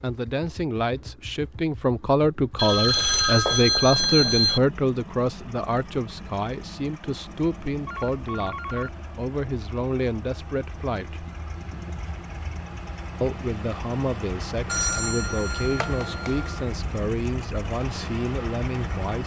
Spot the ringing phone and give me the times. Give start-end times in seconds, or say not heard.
2.5-4.6, 7.8-9.1, 14.7-16.6.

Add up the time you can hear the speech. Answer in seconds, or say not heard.
17 s.